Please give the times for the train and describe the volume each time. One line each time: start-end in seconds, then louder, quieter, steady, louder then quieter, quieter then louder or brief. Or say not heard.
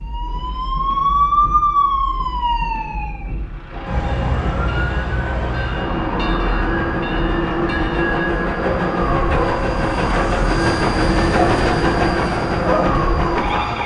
0.0-13.8 louder.